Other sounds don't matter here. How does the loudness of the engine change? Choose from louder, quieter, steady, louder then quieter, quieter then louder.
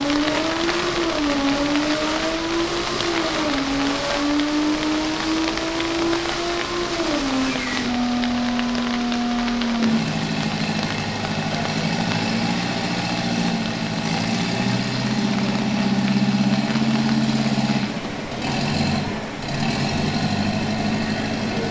steady.